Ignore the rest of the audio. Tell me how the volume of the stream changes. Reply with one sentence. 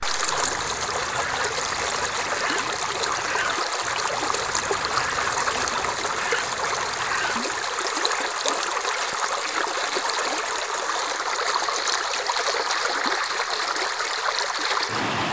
The volume of the stream stays about the same.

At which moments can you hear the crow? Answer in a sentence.
You can hear the crow from 0.0 to 7.8 s.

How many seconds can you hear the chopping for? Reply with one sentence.
The chopping can't be heard in this clip.